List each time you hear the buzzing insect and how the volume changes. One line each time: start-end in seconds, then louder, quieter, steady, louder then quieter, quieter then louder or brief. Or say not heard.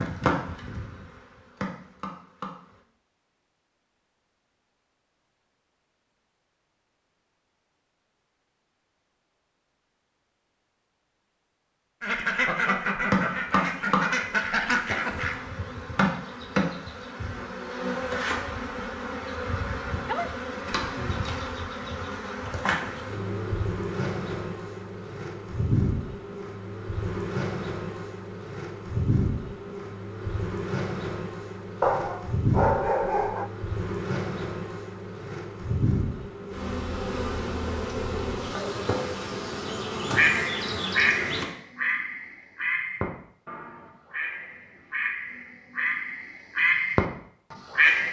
0.0-2.8 brief
13.1-41.5 steady.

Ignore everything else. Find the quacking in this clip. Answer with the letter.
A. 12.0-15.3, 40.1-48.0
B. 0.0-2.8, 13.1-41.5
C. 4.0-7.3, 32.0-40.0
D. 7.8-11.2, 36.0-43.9
A.